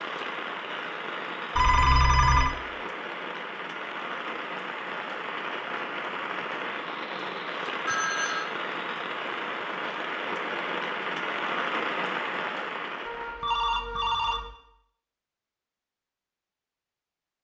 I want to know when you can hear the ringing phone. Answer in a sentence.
The ringing phone can be heard from 1.6 to 2.5 s, from 7.8 to 8.5 s and from 13.1 to 14.6 s.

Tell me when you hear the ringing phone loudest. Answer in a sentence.
The loudest moment of the ringing phone is at 2 seconds.